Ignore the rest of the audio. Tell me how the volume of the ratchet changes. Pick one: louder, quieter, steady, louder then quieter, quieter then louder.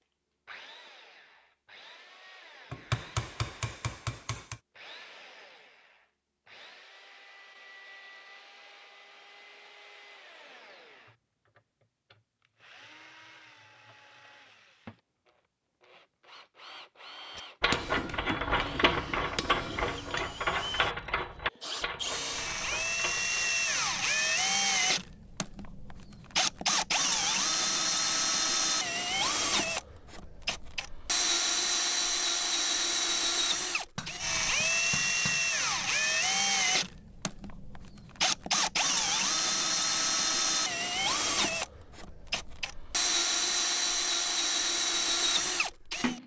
quieter.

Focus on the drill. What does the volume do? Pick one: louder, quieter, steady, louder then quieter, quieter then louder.
louder.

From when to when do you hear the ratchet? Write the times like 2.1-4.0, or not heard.
17.4-23.6.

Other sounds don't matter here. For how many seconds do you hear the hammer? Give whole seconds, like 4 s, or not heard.
6 s.